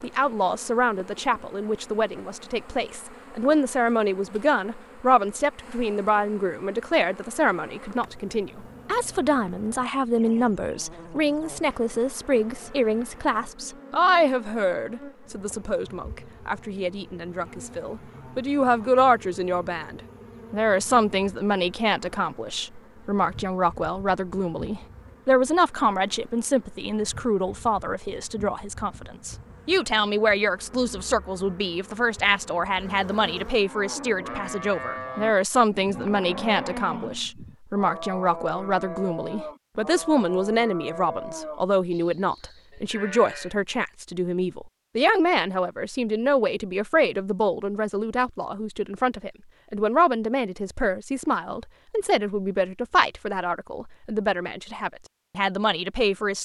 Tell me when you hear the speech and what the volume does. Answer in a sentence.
The speech can be heard from 0.0 to 56.4 s, at a steady volume.